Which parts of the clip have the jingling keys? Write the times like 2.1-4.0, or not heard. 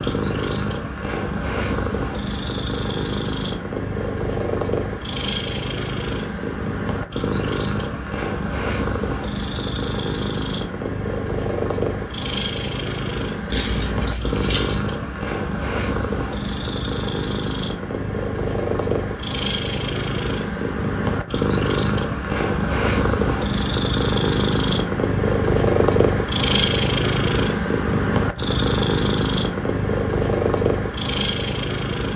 13.5-14.8.